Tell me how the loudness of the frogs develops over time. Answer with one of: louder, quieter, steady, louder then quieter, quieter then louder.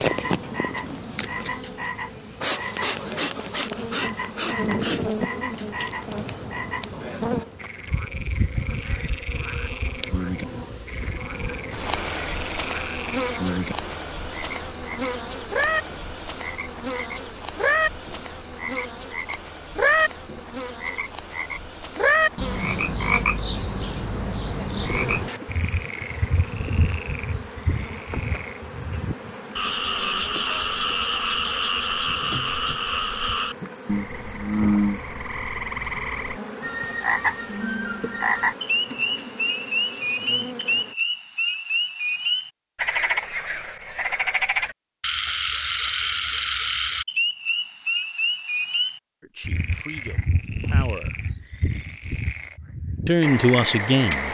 louder.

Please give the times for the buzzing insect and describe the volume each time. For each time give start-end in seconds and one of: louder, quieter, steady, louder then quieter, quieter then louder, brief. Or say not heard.
0.0-41.0 quieter.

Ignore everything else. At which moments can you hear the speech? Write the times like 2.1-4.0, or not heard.
49.2-51.1, 53.0-54.2.